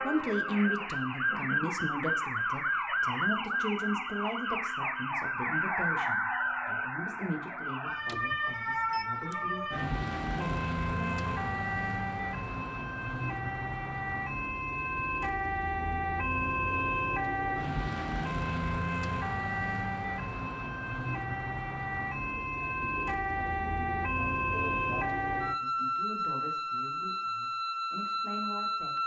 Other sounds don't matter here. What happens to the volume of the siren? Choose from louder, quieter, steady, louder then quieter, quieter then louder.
steady.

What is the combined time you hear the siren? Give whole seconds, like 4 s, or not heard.
29 s.